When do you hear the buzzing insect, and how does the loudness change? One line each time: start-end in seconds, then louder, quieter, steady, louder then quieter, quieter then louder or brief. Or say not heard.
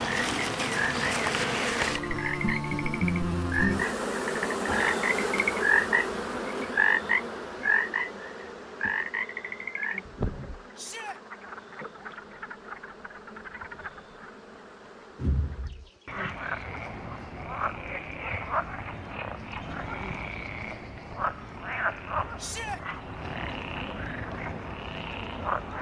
0.0-25.7 quieter.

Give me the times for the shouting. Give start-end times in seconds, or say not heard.
10.8-11.2, 22.4-22.8.